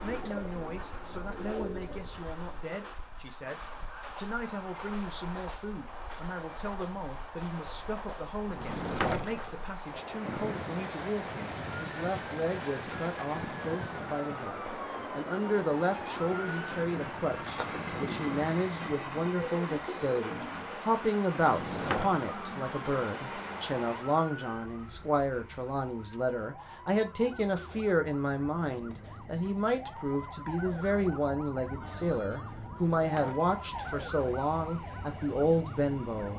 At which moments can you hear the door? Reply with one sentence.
You can hear the door from 8.4 to 9.7 s, from 21.4 to 22.1 s and from 32.6 to 33.5 s.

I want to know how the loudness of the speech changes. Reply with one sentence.
The loudness of the speech goes up.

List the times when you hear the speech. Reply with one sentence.
You can hear the speech from 0.0 to 36.3 s.